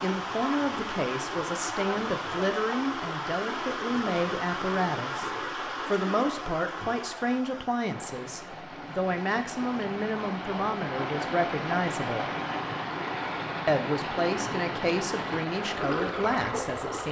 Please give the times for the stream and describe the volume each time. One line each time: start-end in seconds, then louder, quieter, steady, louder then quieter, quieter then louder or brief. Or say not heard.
0.0-17.0 quieter then louder.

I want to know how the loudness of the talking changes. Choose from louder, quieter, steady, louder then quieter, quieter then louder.
steady.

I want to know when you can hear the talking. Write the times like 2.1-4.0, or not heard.
0.0-12.2, 13.7-17.0.